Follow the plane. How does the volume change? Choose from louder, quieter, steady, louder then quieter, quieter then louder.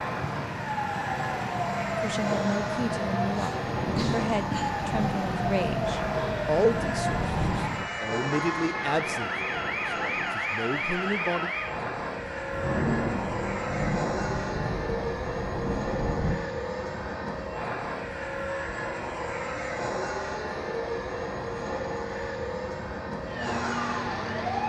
steady.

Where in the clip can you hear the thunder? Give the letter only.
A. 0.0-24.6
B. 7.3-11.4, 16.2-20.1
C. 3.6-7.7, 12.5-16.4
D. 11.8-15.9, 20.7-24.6
C.